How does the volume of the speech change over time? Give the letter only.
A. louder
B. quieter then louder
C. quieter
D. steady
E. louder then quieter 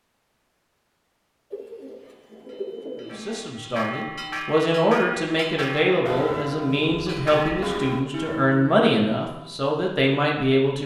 D.